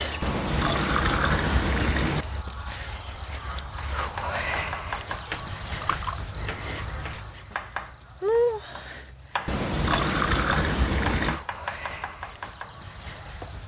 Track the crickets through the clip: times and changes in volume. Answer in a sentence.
You can hear the crickets from 0.0 to 13.6 s, getting quieter.